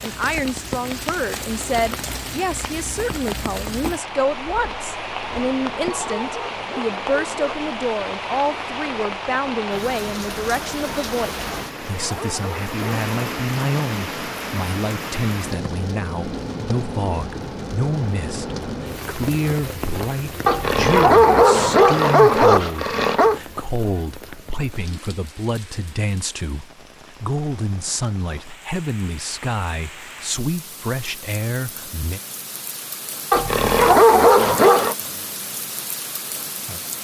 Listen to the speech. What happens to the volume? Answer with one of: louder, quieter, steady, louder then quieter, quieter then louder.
steady.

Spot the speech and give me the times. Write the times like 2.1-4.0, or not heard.
0.0-32.2.